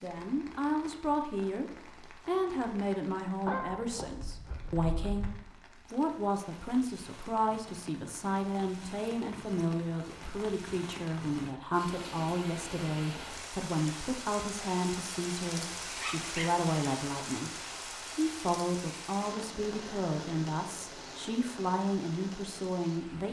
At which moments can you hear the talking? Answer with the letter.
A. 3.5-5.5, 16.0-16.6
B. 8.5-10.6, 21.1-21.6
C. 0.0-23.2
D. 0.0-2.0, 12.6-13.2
C.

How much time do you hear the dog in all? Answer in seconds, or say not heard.
3 s.